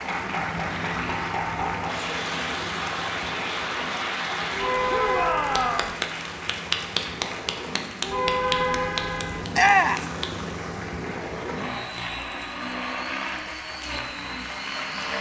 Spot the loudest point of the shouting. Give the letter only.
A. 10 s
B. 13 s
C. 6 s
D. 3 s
A.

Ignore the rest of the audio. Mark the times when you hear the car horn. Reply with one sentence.
You can hear the car horn from 4.5 to 5.9 s and from 8.0 to 9.4 s.